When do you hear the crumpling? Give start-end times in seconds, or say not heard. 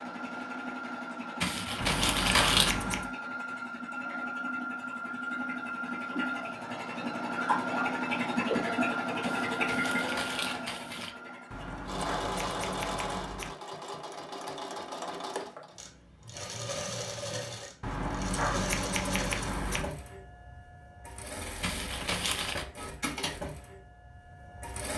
1.4-2.8, 9.2-11.2, 21.6-22.6.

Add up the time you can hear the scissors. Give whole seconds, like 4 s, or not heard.
5 s.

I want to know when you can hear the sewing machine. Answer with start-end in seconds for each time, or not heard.
0.0-24.9.